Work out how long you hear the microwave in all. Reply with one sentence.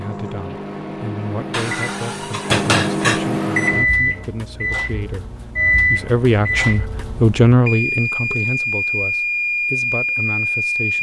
You can hear the microwave for 11 seconds altogether.